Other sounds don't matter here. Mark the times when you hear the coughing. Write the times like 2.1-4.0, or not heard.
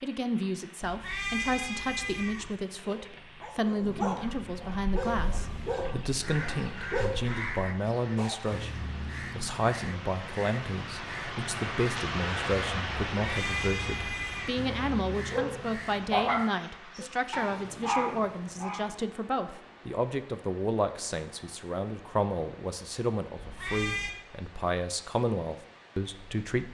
not heard.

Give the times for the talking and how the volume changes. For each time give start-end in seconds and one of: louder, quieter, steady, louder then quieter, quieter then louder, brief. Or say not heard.
0.0-26.7 steady.